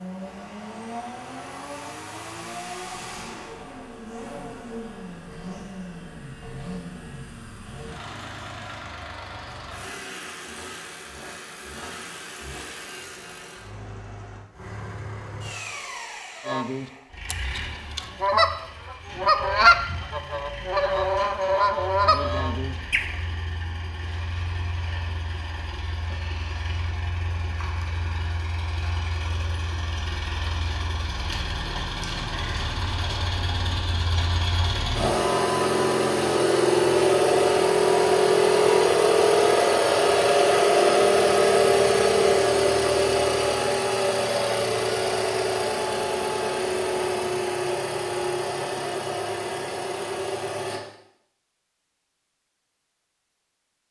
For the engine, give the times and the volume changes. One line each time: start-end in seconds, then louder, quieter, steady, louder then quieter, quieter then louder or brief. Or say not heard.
0.0-50.8 louder.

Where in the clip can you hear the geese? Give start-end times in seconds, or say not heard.
16.4-23.1.